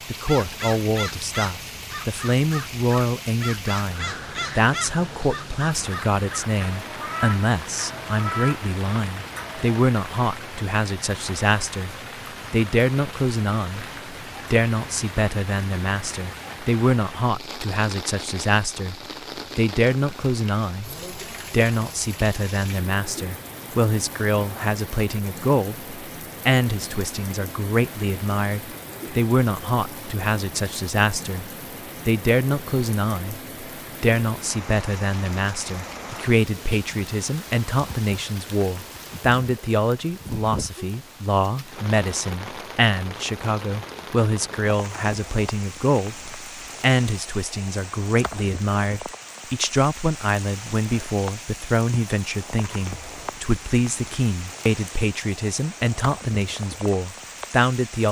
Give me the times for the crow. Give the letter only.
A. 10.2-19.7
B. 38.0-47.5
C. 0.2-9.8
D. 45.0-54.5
C.